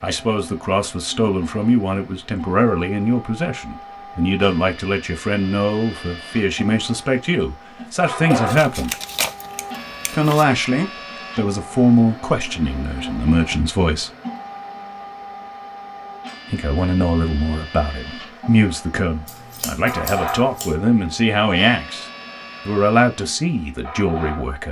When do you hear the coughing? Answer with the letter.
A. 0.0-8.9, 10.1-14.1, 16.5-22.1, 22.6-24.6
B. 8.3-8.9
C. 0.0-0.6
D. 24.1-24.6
B.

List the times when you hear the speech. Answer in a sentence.
The speech can be heard from 0.0 to 8.9 s, from 10.1 to 14.1 s, from 16.5 to 22.1 s and from 22.6 to 24.6 s.